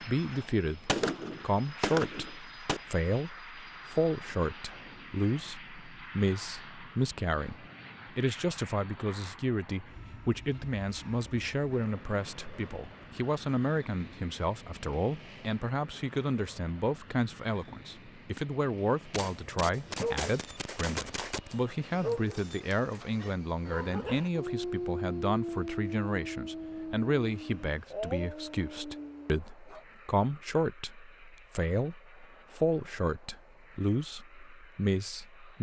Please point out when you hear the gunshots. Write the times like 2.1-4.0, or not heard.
0.8-2.8, 19.1-22.8.